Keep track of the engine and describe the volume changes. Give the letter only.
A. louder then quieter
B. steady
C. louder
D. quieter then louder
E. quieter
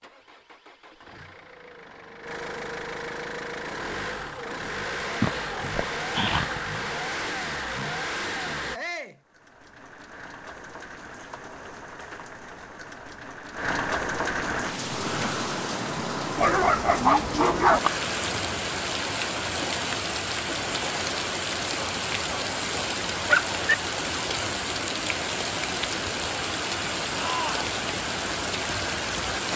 C.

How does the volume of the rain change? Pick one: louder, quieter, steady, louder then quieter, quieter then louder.
louder.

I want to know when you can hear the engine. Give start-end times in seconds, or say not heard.
0.0-8.8.